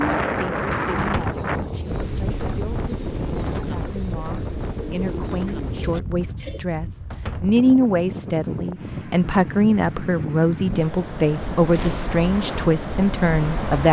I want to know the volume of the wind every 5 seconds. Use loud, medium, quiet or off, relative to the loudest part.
loud, medium, loud.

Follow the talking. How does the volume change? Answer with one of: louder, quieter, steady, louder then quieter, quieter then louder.
louder.